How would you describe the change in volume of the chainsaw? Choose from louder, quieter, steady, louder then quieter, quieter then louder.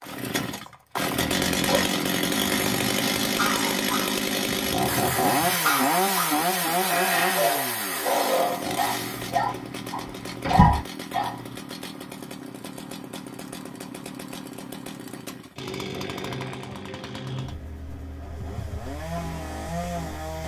quieter.